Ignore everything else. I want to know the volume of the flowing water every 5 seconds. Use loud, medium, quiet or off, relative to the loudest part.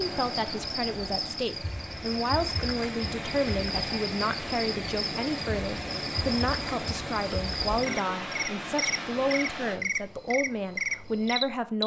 loud, loud, off.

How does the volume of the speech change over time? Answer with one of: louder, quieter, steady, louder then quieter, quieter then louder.
steady.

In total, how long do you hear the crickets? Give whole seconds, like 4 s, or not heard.
12 s.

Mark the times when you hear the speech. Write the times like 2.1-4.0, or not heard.
0.0-11.8.